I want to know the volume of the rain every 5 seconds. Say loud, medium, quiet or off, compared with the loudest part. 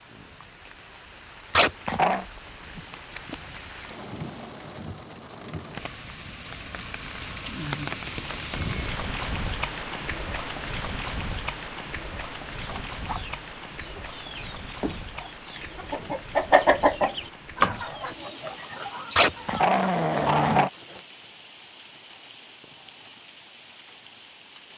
medium, loud, loud, medium, quiet.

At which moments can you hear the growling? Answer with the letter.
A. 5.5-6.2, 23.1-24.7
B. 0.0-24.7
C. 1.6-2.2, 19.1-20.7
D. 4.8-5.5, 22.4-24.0
C.